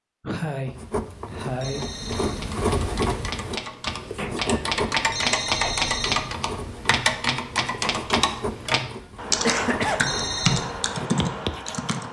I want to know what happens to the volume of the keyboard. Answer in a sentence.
The volume of the keyboard goes up.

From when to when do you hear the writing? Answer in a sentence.
You can hear the writing from 0.7 to 11.9 s.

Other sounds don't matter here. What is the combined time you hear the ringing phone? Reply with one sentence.
The ringing phone can be heard for 3 seconds in total.